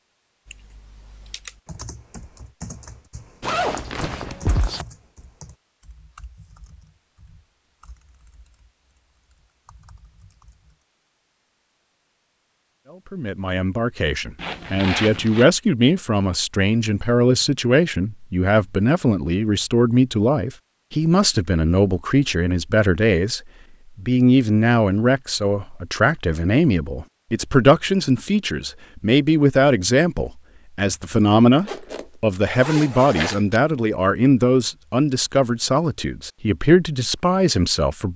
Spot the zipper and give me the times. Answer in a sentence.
The zipper can be heard from 3.4 to 4.8 s, from 14.3 to 15.4 s and from 31.6 to 33.6 s.